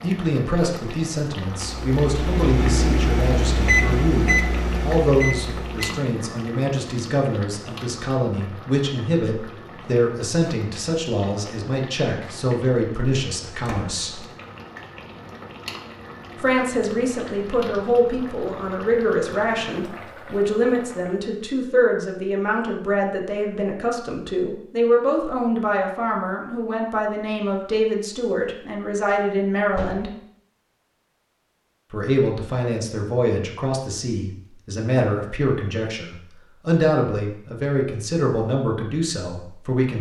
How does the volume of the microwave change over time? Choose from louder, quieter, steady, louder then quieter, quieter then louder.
louder then quieter.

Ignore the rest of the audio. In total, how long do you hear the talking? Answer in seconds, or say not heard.
36 s.